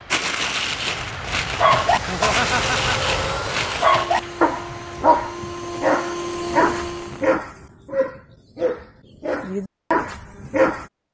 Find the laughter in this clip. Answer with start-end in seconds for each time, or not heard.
2.0-3.1.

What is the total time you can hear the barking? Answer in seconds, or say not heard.
11 s.